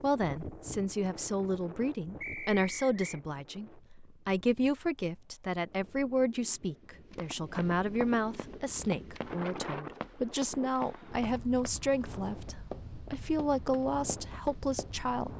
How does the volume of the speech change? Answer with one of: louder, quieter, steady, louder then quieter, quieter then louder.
steady.